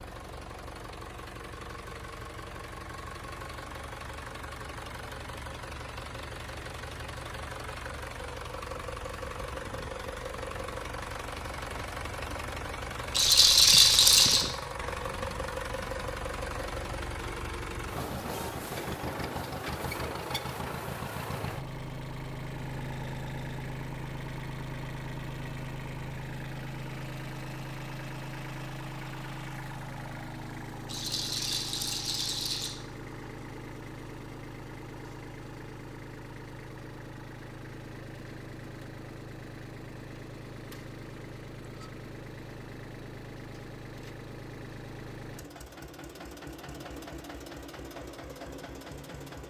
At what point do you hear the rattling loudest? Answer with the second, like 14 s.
14 s.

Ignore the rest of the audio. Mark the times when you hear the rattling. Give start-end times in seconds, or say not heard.
13.1-14.4, 30.9-32.8.